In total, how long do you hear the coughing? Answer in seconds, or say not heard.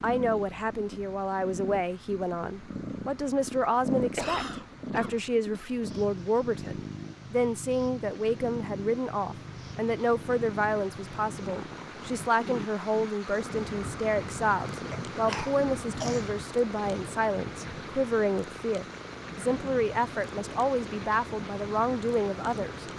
3 s.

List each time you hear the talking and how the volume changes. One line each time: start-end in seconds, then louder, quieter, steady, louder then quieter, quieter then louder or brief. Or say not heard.
0.0-22.9 steady.